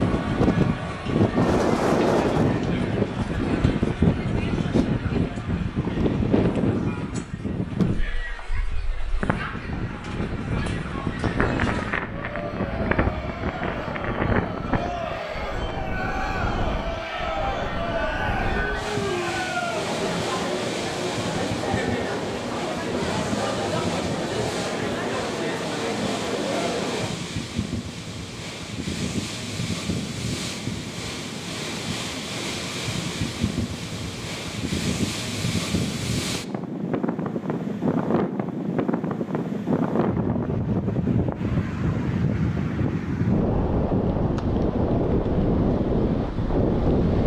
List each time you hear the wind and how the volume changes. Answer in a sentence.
You can hear the wind from 0.0 to 47.2 s, getting quieter then louder.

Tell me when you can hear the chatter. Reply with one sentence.
You can hear the chatter from 0.0 to 27.1 s.